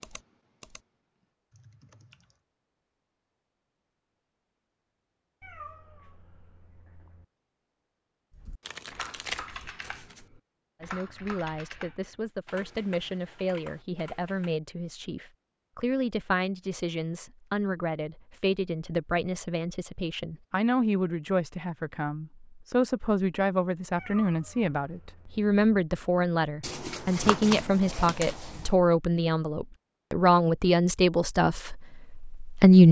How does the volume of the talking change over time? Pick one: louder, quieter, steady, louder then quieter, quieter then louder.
louder.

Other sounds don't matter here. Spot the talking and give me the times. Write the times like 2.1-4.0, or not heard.
10.8-32.8.